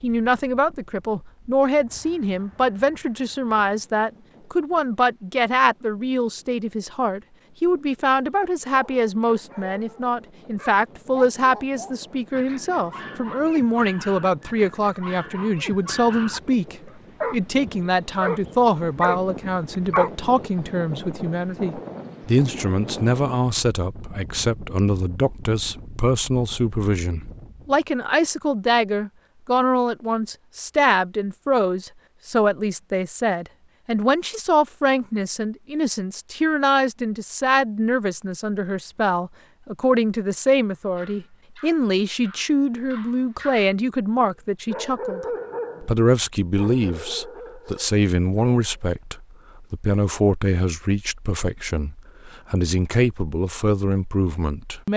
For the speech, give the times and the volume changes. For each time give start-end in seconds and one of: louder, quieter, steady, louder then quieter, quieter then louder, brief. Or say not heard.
0.0-54.9 steady.